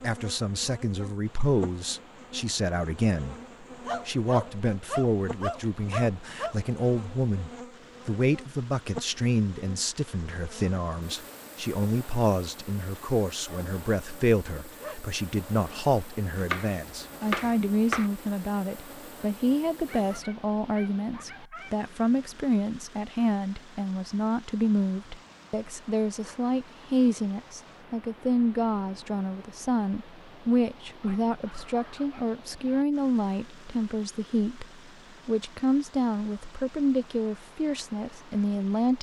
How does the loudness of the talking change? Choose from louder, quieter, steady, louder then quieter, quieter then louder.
steady.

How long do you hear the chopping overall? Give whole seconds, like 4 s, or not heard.
2 s.